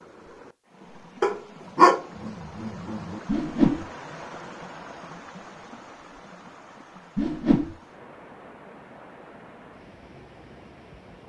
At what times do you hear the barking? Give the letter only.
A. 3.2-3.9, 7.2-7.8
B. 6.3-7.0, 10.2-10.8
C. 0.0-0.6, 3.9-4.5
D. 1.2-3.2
D.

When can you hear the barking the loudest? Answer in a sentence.
The loudest moment of the barking is at 2 seconds.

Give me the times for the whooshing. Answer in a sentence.
The whooshing can be heard from 3.2 to 3.9 s and from 7.2 to 7.8 s.